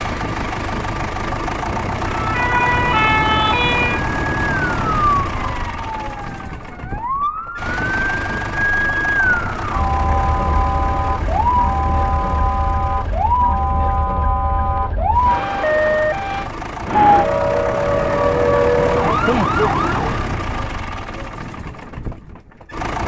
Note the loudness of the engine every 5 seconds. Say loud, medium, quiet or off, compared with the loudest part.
loud, medium, medium, loud, medium.